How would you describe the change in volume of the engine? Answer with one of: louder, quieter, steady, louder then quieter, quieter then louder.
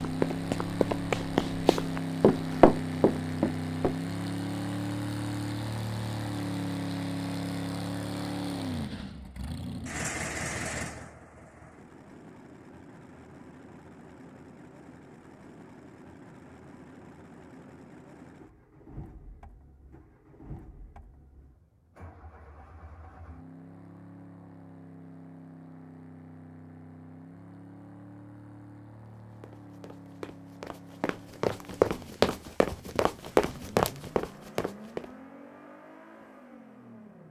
quieter.